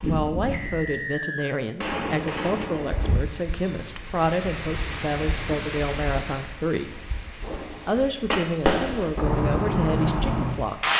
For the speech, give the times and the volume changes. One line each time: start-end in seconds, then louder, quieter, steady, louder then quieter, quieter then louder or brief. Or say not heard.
0.1-10.9 steady.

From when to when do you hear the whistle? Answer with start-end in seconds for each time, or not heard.
0.5-1.6.